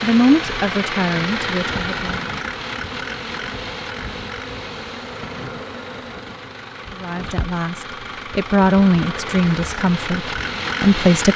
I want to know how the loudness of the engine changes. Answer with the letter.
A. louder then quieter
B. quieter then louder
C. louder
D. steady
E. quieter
B.